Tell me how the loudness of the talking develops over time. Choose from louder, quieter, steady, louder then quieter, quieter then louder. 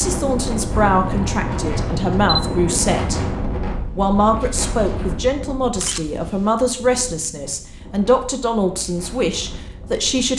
steady.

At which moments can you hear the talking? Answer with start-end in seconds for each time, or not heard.
0.0-3.2, 4.0-10.3.